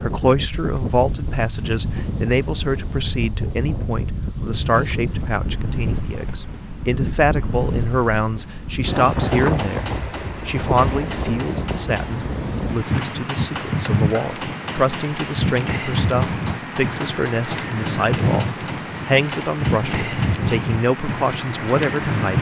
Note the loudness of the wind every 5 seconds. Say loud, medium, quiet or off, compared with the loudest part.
medium, loud, loud, loud, loud.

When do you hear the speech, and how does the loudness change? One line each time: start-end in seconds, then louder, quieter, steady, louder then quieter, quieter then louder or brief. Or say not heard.
0.0-22.3 steady.